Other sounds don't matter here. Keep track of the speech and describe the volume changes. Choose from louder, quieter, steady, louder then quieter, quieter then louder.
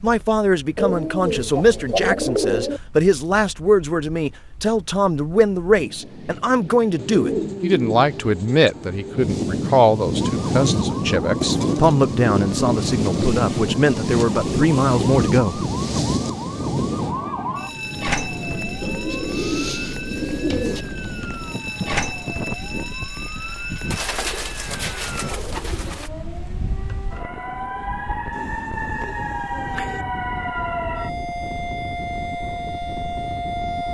steady.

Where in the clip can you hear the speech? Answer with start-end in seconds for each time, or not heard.
0.0-15.6.